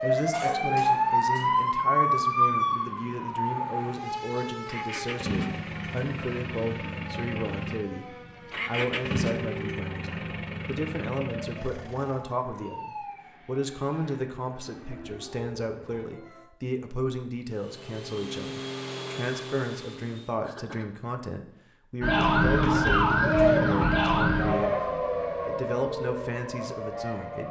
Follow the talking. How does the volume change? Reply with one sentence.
The volume of the talking stays about the same.